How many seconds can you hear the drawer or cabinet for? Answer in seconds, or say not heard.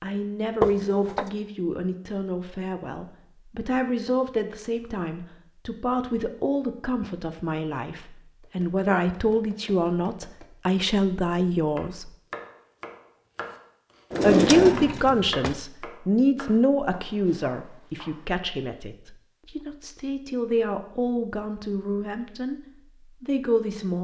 2 s.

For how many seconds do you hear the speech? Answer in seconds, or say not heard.
21 s.